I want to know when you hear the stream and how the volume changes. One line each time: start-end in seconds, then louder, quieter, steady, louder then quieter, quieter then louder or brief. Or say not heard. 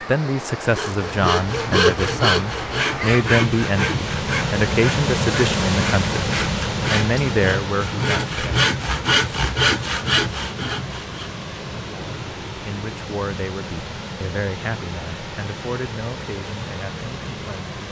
0.0-17.8 louder then quieter.